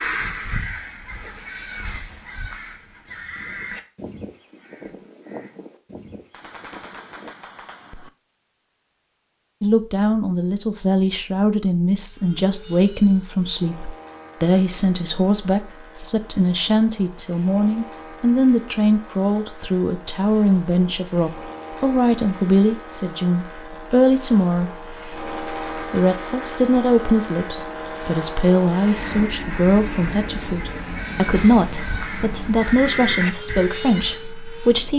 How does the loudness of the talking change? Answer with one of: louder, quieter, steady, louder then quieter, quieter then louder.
steady.